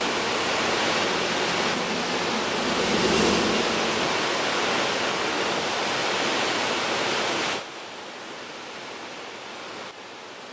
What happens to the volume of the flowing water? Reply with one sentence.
The volume of the flowing water goes down.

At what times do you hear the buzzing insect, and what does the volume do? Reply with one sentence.
The buzzing insect can be heard from 0.0 to 4.2 s, getting louder.